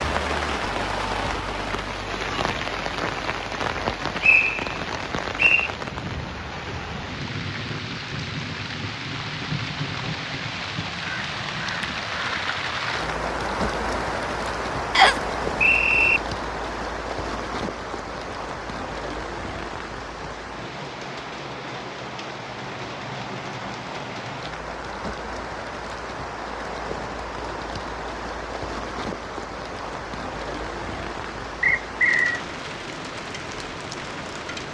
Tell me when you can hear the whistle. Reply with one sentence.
You can hear the whistle from 4.2 to 5.7 s, from 14.9 to 16.2 s and from 31.6 to 32.4 s.